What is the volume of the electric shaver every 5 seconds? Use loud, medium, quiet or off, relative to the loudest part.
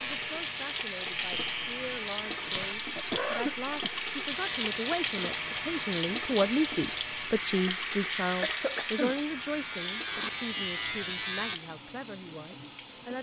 medium, medium, loud.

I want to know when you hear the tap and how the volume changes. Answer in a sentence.
The tap can be heard from 0.0 to 13.1 s, getting quieter.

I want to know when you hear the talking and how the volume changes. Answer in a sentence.
You can hear the talking from 0.0 to 13.1 s, getting louder then quieter.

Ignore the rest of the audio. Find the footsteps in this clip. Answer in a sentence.
The footsteps can't be heard in this clip.